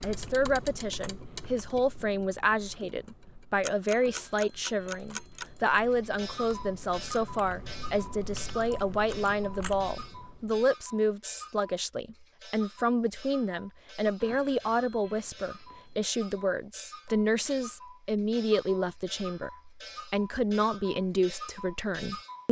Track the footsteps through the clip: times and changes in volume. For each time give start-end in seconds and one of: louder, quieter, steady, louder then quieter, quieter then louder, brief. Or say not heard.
not heard.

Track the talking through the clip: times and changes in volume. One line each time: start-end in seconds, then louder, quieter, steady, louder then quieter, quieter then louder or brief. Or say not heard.
0.0-22.4 steady.